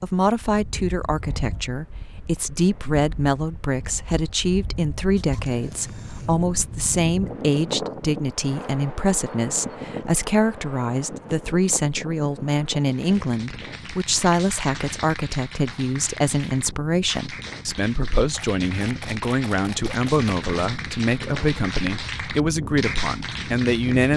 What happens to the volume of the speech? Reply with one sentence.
The loudness of the speech stays about the same.